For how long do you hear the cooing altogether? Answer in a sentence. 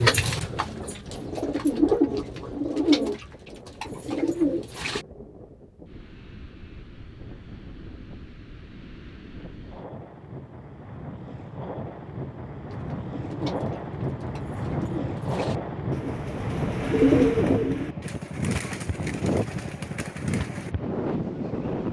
The cooing can be heard for 13 seconds in total.